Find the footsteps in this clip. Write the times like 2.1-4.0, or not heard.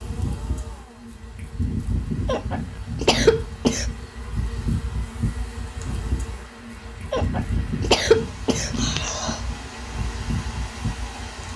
not heard.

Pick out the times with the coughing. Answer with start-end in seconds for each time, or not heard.
2.2-3.9, 7.1-9.4.